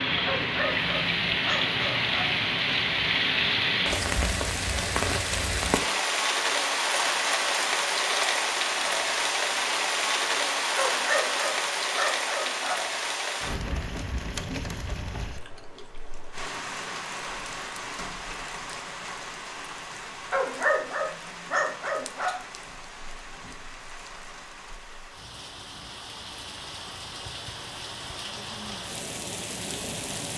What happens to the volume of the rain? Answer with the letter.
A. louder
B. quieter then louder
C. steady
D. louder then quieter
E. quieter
E.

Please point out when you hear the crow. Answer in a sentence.
The crow can't be heard in this clip.